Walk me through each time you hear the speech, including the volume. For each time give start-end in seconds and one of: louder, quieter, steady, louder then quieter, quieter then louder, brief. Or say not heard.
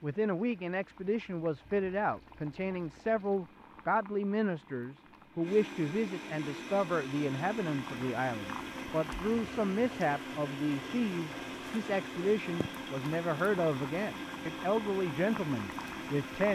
0.0-16.5 steady.